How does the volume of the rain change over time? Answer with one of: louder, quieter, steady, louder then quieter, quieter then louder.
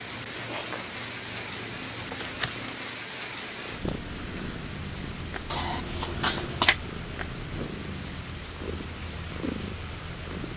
steady.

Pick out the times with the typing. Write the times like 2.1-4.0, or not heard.
not heard.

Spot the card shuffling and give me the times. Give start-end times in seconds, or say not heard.
1.9-2.7, 5.5-6.8.